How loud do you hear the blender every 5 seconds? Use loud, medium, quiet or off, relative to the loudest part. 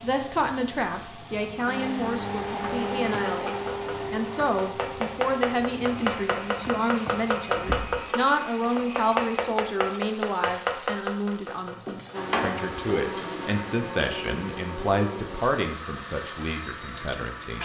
loud, medium, loud, medium.